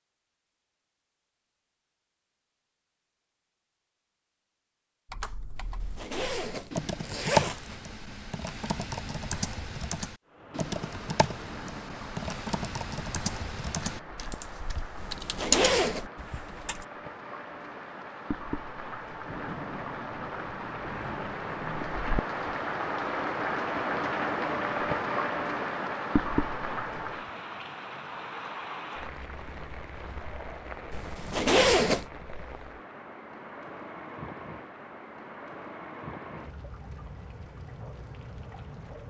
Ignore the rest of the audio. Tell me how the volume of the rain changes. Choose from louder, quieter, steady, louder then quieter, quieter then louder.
louder then quieter.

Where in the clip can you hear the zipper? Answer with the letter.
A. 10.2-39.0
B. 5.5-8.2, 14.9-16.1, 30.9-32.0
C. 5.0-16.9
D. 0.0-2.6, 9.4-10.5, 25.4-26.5
B.